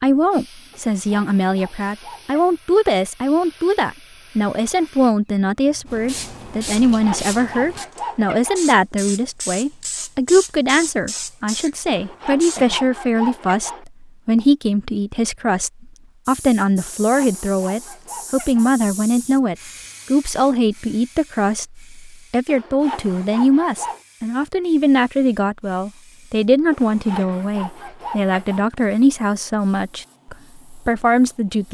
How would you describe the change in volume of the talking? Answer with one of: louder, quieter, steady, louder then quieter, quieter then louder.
steady.